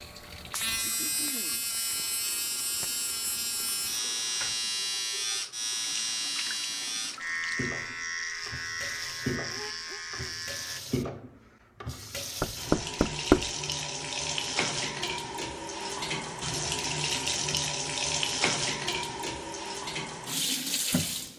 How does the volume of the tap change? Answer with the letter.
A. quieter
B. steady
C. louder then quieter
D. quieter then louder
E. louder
E.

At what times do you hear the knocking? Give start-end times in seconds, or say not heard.
12.4-13.5.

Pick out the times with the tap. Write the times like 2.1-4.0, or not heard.
0.0-21.3.